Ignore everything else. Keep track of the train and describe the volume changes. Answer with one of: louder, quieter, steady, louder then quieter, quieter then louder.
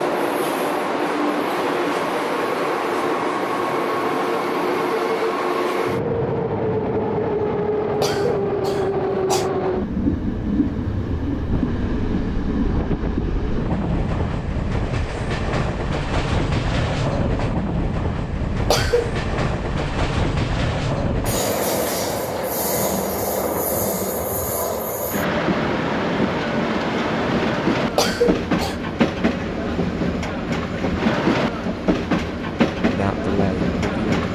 steady.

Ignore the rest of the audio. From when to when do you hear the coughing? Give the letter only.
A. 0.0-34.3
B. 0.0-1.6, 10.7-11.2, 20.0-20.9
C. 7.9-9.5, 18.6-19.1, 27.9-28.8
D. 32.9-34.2
C.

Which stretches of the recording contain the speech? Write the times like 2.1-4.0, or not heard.
32.9-34.2.